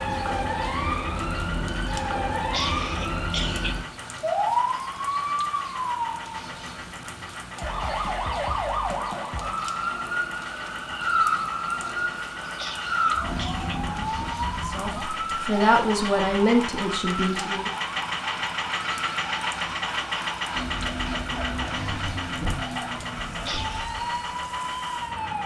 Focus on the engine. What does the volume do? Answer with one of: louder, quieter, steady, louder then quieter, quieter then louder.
louder.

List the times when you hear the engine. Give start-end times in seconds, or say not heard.
0.0-25.4.